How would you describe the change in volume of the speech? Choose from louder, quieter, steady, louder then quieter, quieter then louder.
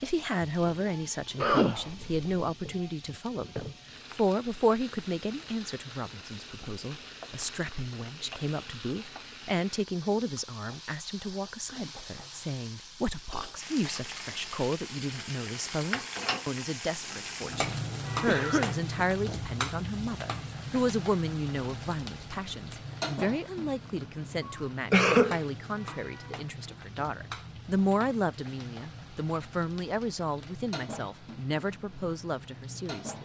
steady.